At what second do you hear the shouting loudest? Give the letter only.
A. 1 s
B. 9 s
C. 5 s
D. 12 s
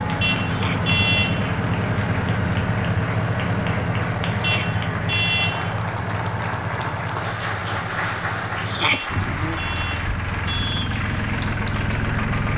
B.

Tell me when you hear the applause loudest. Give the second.
8 s.